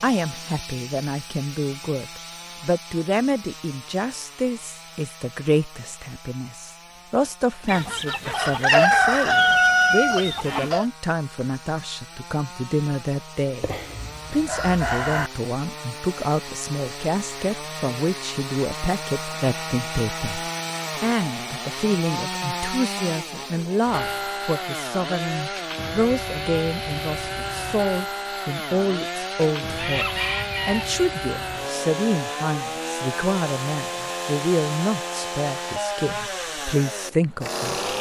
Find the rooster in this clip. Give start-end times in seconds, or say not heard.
7.7-10.8, 13.6-15.3, 29.8-30.9.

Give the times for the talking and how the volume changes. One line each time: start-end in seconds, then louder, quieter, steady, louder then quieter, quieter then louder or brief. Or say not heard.
0.0-13.7 steady
14.3-37.9 steady.